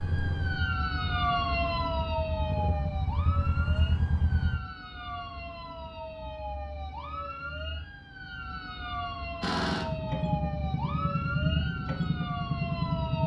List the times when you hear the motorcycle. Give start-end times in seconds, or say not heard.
0.0-4.6, 9.4-13.2.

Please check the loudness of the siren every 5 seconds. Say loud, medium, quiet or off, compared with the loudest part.
loud, medium, loud.